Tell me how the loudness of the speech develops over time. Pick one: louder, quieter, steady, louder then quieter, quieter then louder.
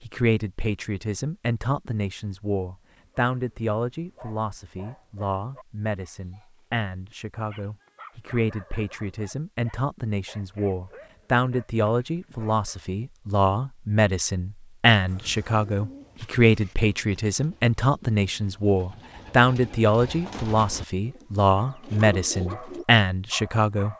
louder.